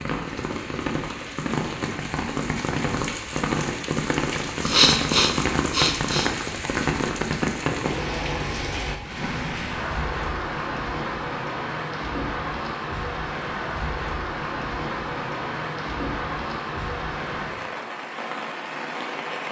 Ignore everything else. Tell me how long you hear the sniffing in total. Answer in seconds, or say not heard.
2 s.